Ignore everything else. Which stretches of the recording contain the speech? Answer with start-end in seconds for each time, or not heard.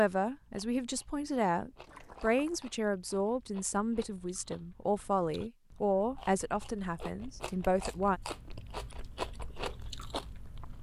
0.0-8.2.